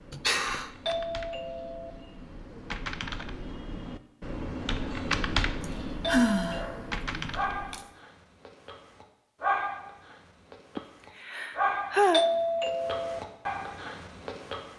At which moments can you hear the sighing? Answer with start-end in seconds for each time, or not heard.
0.1-0.7, 5.6-7.8, 10.8-12.2.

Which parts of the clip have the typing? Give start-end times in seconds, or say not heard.
0.0-7.8.